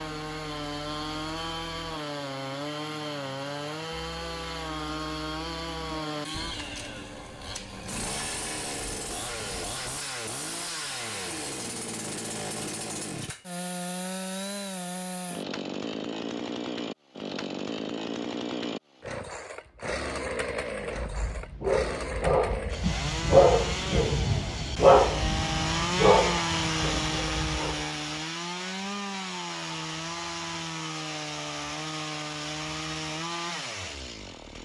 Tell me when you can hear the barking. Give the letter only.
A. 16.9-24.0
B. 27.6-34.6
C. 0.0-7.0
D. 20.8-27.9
D.